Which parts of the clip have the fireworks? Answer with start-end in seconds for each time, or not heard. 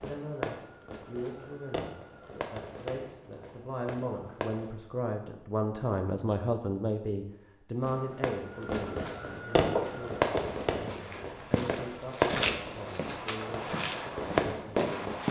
0.0-4.8, 7.8-15.2.